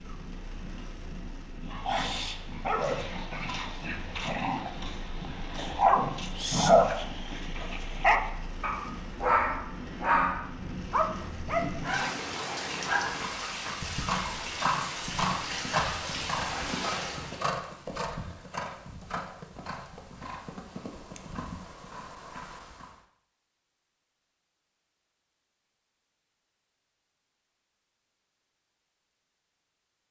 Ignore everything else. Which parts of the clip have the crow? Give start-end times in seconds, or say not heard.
not heard.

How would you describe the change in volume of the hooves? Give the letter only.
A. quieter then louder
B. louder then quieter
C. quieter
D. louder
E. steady
C.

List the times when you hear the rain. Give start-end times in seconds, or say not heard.
0.0-17.4.